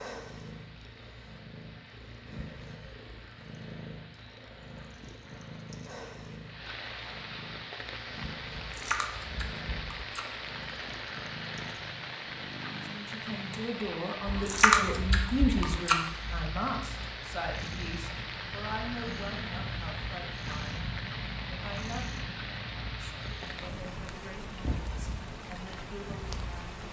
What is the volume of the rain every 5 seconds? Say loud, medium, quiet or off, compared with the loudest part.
quiet, loud, loud, loud, loud, loud.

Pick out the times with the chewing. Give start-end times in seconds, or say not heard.
8.6-10.2, 14.2-16.0.